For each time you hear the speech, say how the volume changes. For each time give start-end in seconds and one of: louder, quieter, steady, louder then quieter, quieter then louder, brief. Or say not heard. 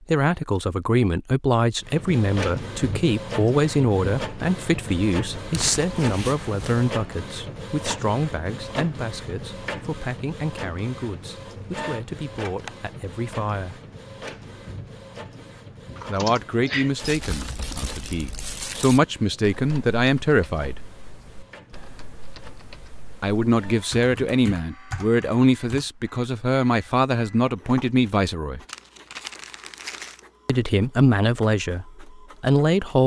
0.1-13.8 quieter
16.1-20.8 quieter then louder
23.2-28.6 steady
30.4-33.0 brief.